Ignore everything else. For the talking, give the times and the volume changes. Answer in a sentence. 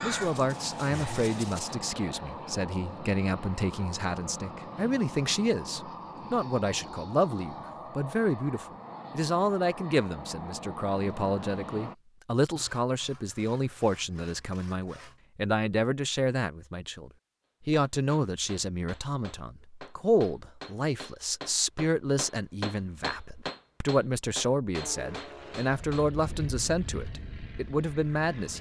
You can hear the talking from 0.0 to 28.5 s, at a steady volume.